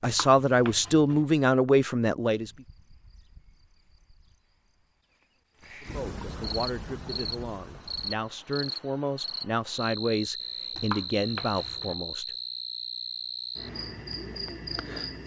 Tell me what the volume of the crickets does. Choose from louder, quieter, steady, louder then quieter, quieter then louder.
louder.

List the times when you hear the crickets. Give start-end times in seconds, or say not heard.
2.4-15.2.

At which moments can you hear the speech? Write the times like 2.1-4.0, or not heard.
0.0-2.5, 5.8-12.3.